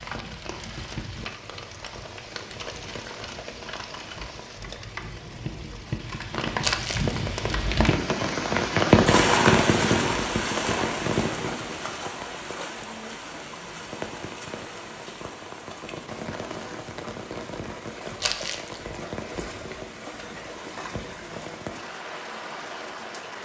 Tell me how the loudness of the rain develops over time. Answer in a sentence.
The volume of the rain goes up, then down.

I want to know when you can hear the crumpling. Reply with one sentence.
You can hear the crumpling from 6.6 to 7.2 s and from 18.2 to 18.8 s.